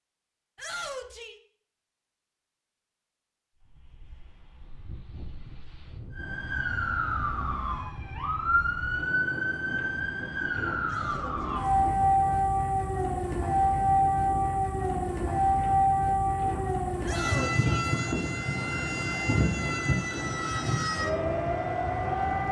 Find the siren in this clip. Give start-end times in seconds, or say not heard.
6.1-22.4.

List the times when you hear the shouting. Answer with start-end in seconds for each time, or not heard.
0.6-1.4, 10.8-11.8, 17.0-17.9.